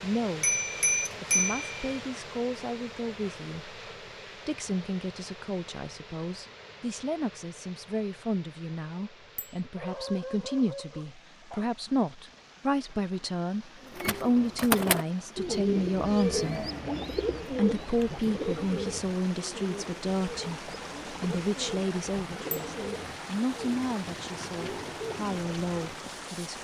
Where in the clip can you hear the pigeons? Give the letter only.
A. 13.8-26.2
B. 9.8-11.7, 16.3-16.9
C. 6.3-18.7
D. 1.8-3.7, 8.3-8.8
A.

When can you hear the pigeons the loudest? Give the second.
15 s.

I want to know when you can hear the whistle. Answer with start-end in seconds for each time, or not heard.
not heard.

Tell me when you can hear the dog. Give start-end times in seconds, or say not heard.
9.8-11.7, 16.3-16.9.